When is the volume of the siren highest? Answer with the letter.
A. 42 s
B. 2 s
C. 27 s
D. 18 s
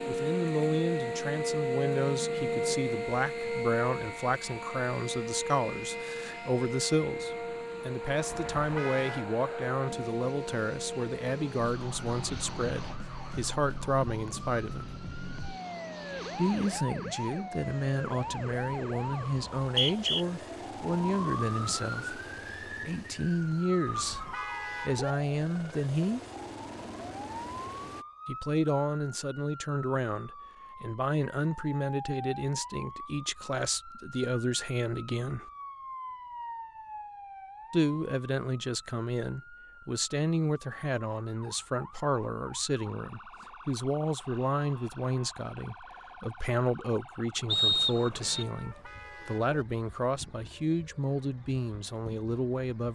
B.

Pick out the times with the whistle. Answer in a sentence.
You can hear the whistle from 19.6 to 20.2 s and from 47.5 to 48.5 s.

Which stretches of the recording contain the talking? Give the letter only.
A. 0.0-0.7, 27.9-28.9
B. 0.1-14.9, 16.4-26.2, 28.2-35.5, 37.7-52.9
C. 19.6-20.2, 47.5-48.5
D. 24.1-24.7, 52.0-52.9
B.